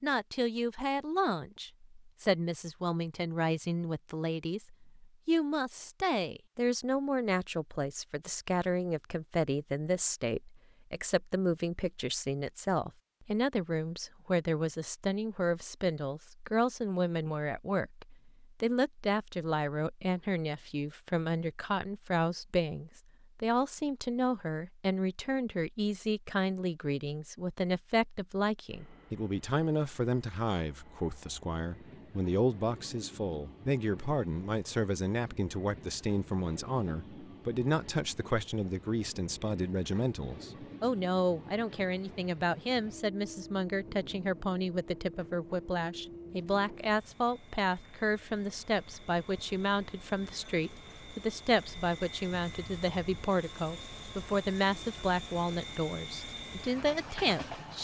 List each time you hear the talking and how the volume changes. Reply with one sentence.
You can hear the talking from 0.0 to 57.7 s, at a steady volume.